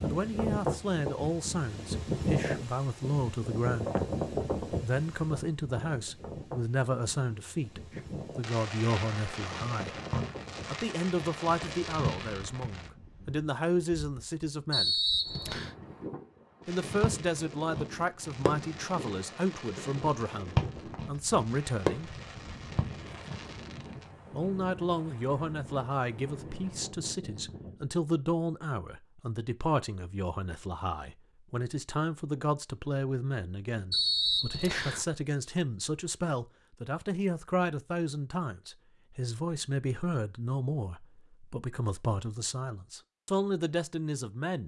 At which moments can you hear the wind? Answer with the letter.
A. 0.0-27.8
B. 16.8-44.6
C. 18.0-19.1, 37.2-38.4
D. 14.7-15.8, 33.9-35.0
A.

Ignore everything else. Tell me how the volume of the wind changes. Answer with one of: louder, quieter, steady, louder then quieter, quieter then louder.
quieter.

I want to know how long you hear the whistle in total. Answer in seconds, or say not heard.
2 s.